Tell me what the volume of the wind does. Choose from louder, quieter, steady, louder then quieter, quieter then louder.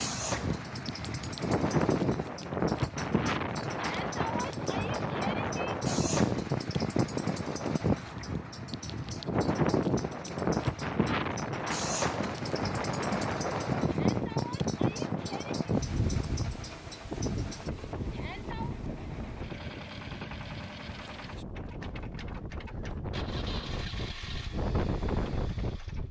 quieter.